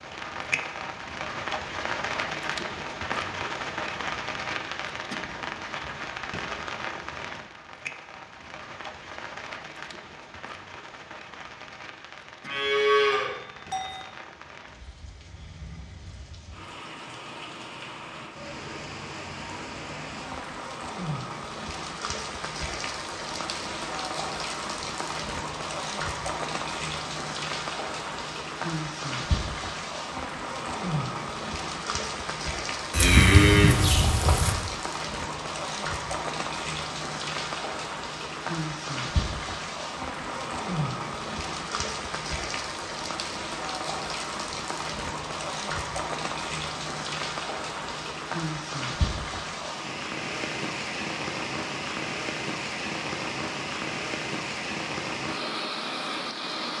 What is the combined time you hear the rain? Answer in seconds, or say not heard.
57 s.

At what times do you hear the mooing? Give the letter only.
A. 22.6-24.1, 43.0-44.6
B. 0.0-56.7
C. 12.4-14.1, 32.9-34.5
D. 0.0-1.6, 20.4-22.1
C.